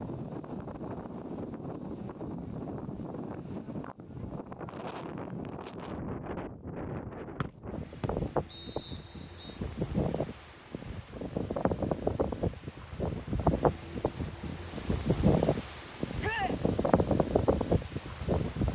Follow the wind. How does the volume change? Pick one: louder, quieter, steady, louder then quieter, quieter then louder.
louder.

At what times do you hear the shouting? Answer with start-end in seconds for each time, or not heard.
16.2-16.6.